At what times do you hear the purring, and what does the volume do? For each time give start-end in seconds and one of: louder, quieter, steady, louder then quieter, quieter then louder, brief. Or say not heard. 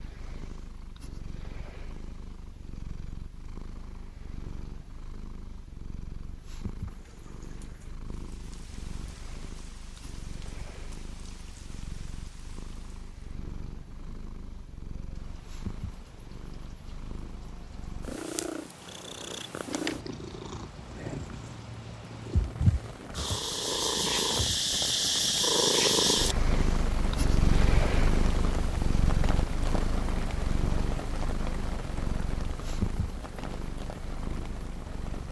0.0-35.2 louder then quieter.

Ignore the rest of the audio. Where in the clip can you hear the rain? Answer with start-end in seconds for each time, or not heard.
6.8-35.2.